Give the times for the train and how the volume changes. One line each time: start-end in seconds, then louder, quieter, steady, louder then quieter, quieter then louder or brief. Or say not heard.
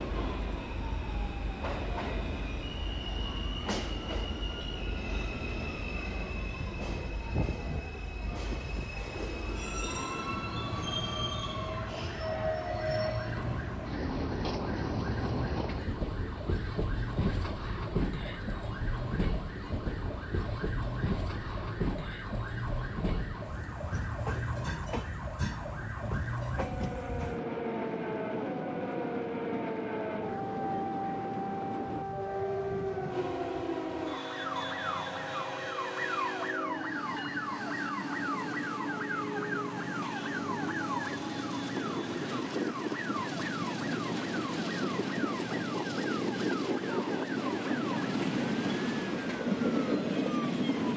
0.0-50.9 louder.